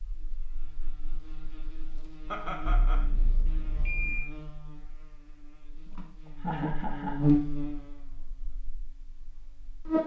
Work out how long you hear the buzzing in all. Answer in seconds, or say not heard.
10 s.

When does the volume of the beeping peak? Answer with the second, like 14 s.
4 s.